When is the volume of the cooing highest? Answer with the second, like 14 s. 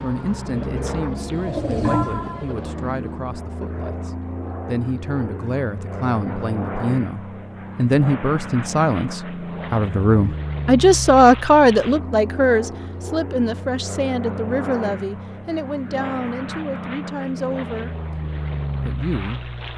2 s.